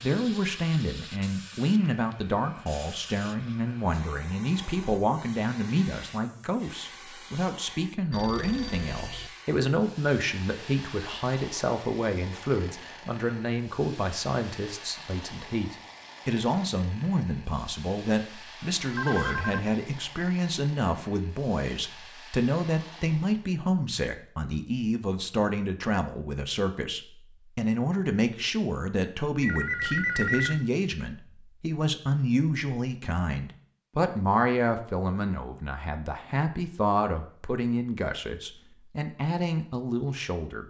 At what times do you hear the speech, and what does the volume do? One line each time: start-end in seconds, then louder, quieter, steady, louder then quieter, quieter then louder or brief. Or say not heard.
0.0-40.6 steady.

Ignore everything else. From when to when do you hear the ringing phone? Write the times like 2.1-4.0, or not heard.
8.1-9.3, 18.9-19.6, 29.4-30.7.